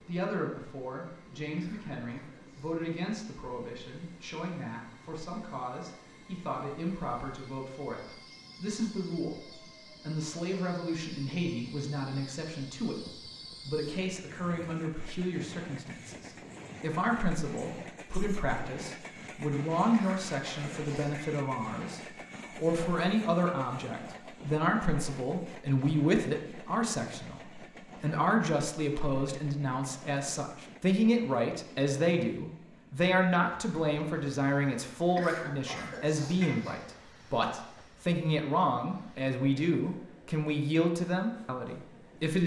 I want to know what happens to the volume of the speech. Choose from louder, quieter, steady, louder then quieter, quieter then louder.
louder.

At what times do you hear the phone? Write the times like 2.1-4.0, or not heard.
not heard.